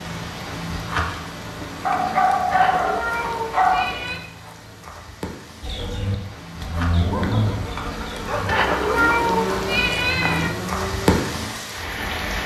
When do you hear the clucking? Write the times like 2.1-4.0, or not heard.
not heard.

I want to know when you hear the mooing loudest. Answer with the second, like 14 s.
7 s.